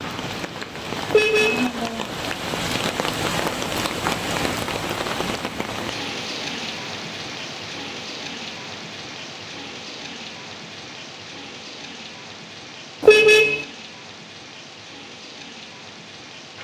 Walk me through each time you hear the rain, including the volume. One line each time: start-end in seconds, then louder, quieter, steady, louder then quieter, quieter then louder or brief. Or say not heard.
0.0-16.5 quieter.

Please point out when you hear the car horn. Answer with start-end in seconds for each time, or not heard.
1.1-1.7, 13.0-13.7.